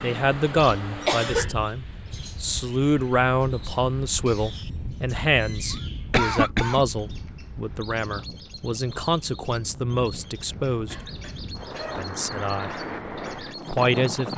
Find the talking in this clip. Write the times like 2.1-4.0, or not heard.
0.0-10.9, 11.9-12.8, 13.7-14.3.